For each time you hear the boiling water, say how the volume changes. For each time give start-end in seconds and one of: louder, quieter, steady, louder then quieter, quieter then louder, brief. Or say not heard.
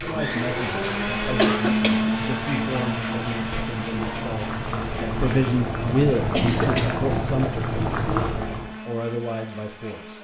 0.0-8.8 louder.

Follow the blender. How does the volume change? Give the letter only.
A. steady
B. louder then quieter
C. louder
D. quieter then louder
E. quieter
E.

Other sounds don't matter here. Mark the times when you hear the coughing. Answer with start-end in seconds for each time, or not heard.
1.4-2.1, 6.0-7.1.